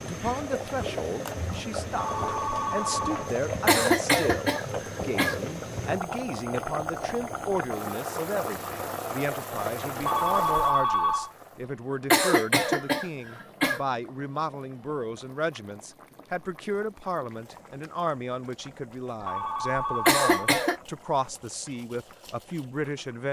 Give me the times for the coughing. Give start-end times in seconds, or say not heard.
3.6-5.5, 12.1-13.8, 20.1-20.8.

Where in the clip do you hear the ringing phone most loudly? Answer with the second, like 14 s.
11 s.